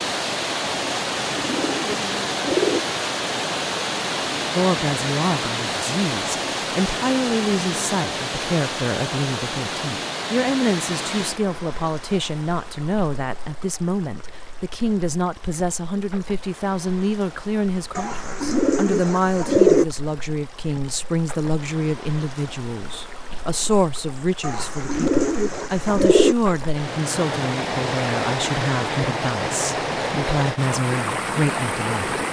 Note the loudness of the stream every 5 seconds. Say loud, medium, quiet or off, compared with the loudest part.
loud, loud, medium, quiet, quiet, loud, loud.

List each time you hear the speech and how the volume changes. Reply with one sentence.
You can hear the speech from 4.5 to 32.2 s, at a steady volume.